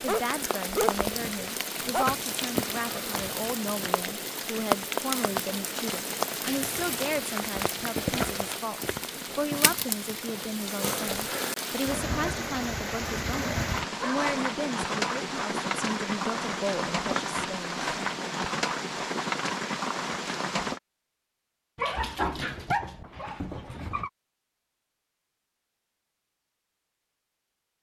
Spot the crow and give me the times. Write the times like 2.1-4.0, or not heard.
not heard.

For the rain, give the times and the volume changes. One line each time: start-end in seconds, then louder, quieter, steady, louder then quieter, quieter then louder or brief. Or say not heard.
0.0-20.8 steady.